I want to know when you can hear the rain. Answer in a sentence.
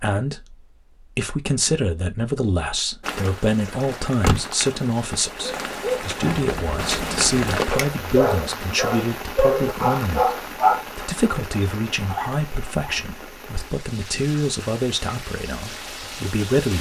You can hear the rain from 3.0 to 16.7 s.